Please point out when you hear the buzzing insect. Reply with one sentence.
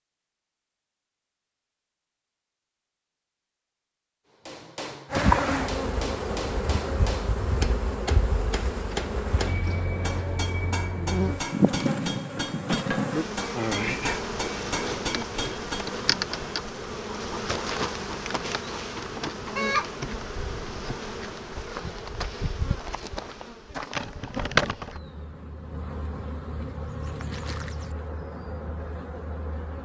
The buzzing insect can be heard from 5.1 to 29.8 s.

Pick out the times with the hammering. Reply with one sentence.
You can hear the hammering from 4.5 to 15.9 s.